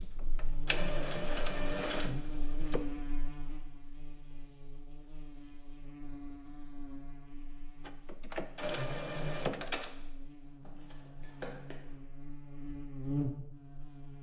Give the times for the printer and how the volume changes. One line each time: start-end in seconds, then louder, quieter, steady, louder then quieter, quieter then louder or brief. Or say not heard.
0.0-2.8 brief
7.8-11.9 quieter then louder.